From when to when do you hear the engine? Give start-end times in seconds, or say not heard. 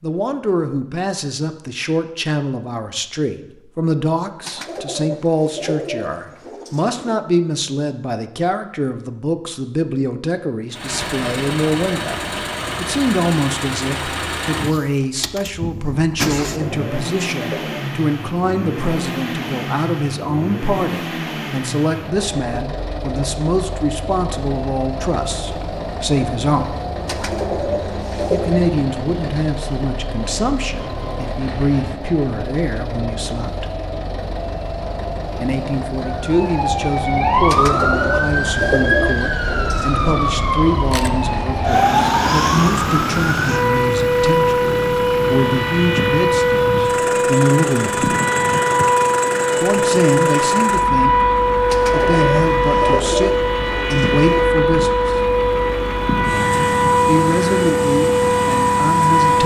10.7-59.4.